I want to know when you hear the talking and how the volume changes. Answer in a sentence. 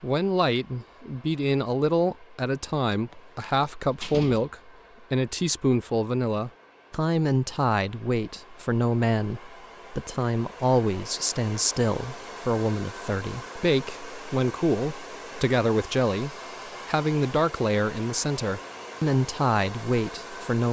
The talking can be heard from 0.0 to 20.6 s, at a steady volume.